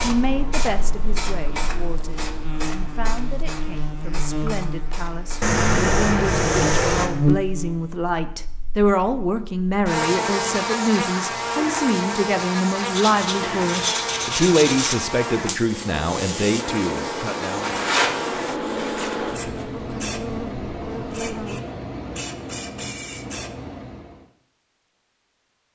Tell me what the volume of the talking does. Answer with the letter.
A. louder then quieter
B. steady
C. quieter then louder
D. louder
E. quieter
D.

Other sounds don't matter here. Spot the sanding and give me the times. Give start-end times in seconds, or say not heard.
5.4-7.1, 12.9-14.9, 17.6-18.1, 18.8-19.6.